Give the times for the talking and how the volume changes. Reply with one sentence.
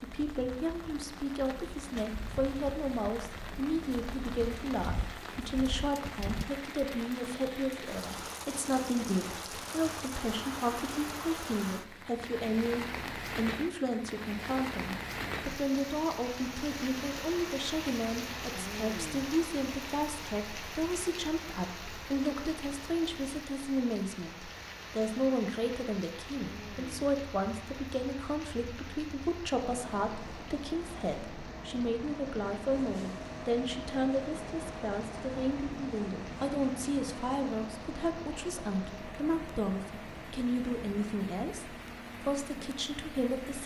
The talking can be heard from 0.0 to 43.6 s, at a steady volume.